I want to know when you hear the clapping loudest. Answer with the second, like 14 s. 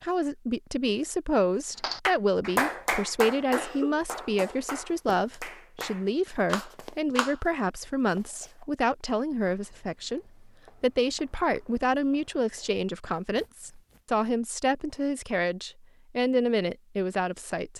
3 s.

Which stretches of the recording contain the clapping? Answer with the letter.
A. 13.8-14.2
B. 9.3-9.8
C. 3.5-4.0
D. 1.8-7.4
D.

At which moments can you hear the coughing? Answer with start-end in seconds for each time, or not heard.
3.5-4.0.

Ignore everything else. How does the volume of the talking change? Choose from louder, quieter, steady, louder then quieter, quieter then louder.
steady.